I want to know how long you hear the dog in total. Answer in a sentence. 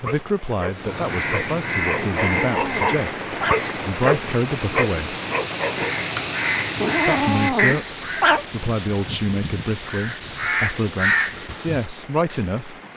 The dog can be heard for 6 seconds in total.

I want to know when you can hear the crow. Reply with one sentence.
You can hear the crow from 0.8 to 12.4 s.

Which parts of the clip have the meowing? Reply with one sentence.
The meowing can be heard from 1.9 to 3.6 s and from 6.8 to 8.4 s.